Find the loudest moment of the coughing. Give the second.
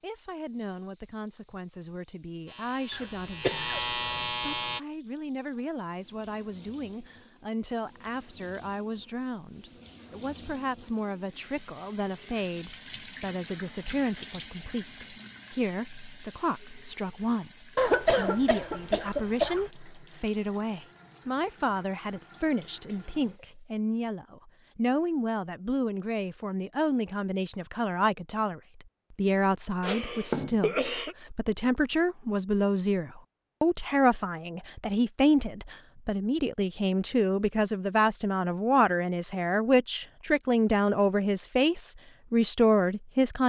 18 s.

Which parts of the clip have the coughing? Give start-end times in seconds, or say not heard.
2.9-4.3, 17.8-19.7, 29.8-31.1.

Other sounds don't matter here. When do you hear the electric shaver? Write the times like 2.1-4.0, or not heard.
2.5-4.8.